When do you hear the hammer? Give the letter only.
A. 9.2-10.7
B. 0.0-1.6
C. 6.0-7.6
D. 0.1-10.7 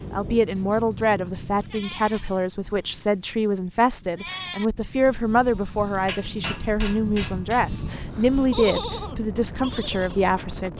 C.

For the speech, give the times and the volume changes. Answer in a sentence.
You can hear the speech from 0.1 to 10.7 s, at a steady volume.